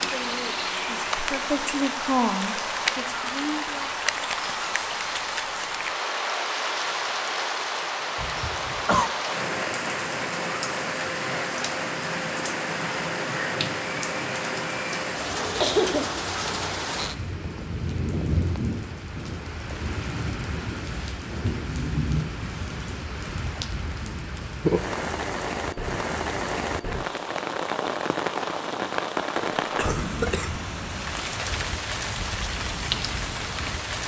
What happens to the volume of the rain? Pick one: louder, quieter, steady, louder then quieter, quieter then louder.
steady.